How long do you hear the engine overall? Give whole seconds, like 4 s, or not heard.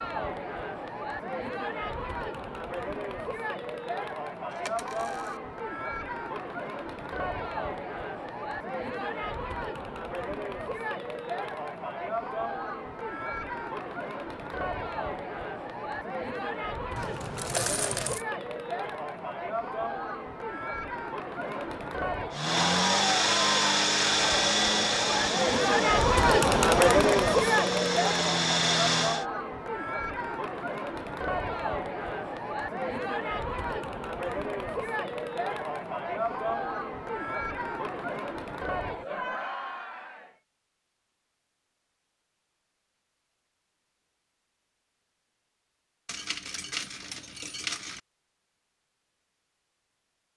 7 s.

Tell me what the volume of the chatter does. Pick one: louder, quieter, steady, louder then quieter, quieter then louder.
louder then quieter.